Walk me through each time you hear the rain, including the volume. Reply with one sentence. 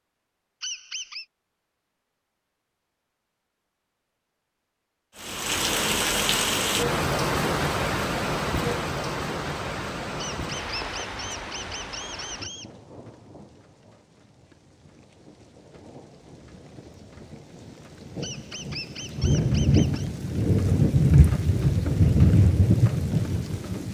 The rain can be heard from 5.2 to 23.8 s, getting quieter then louder.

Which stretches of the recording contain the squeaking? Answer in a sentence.
You can hear the squeaking from 0.6 to 1.2 s, from 10.2 to 12.7 s and from 18.2 to 20.1 s.